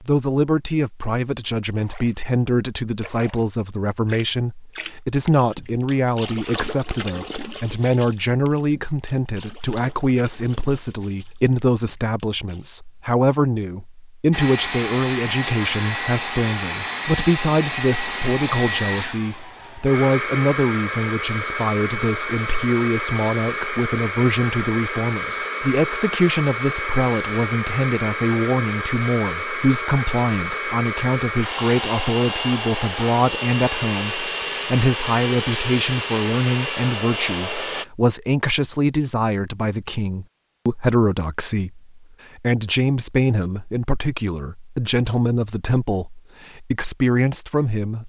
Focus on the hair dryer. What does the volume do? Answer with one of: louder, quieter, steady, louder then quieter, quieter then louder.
steady.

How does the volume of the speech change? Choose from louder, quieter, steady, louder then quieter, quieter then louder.
steady.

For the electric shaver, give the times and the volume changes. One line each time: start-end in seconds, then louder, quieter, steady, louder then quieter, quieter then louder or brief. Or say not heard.
not heard.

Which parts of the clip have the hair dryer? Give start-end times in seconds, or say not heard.
14.3-37.9.